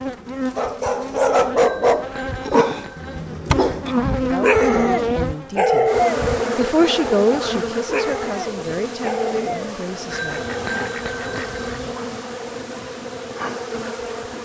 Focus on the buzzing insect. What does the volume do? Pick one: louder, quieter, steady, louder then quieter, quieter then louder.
louder then quieter.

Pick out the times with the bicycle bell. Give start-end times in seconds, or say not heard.
1.6-3.2, 10.1-11.7.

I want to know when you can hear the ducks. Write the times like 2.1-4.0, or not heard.
10.3-12.0.